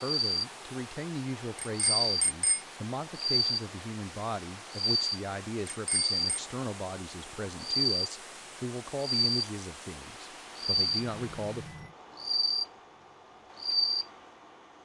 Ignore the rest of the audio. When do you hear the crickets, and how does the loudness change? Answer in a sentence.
You can hear the crickets from 0.0 to 14.6 s, at a steady volume.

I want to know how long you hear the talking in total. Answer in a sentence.
The talking can be heard for 12 seconds in total.